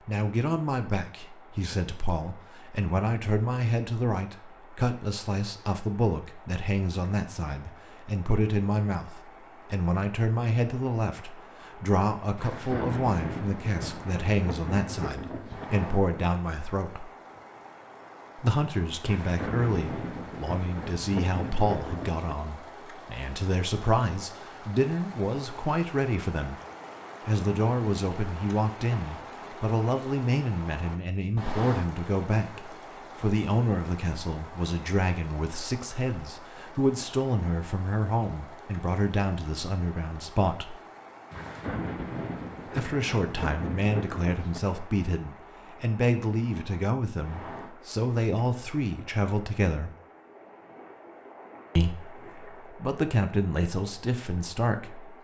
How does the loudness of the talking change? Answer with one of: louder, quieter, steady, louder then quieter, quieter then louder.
steady.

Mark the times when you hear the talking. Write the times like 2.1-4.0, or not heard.
0.1-17.1, 18.4-26.6, 27.2-40.8, 42.7-49.9, 51.8-55.1.